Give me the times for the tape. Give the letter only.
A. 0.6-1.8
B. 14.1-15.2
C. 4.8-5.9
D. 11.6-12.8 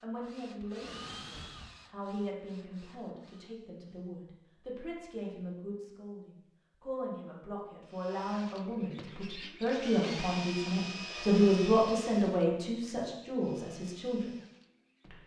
A.